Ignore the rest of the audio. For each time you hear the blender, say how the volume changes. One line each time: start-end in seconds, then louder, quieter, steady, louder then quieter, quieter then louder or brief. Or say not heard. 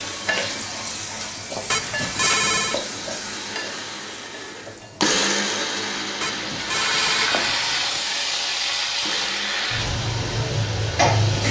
0.0-11.2 louder then quieter.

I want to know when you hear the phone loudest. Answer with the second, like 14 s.
2 s.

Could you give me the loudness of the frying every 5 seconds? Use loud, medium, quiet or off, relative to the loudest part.
medium, loud, loud.